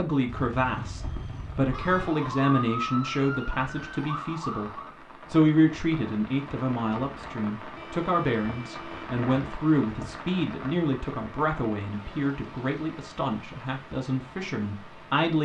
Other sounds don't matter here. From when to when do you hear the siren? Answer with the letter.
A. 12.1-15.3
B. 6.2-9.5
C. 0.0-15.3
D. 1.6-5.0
D.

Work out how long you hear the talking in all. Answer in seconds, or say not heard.
15 s.